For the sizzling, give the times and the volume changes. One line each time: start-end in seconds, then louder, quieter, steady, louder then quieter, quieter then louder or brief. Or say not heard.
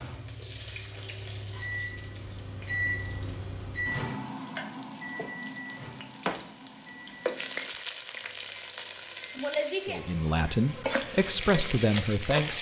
0.0-12.5 louder.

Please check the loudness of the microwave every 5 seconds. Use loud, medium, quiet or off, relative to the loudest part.
loud, medium, off.